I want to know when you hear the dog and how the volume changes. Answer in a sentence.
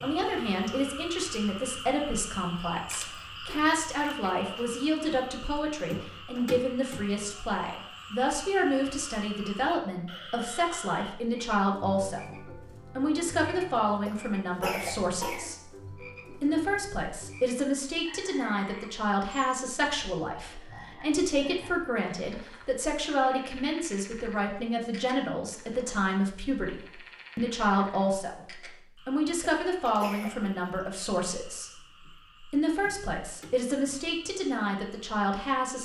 You can't hear the dog here.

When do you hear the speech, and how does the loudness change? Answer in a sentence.
You can hear the speech from 0.0 to 35.8 s, at a steady volume.